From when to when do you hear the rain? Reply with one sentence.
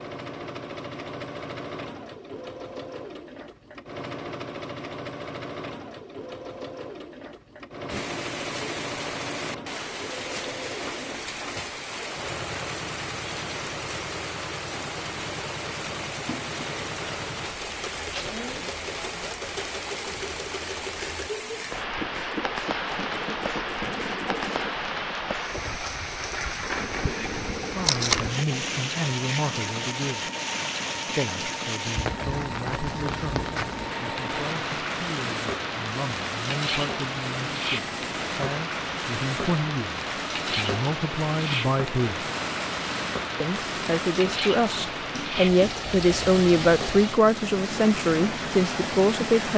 The rain can be heard from 7.8 to 49.5 s.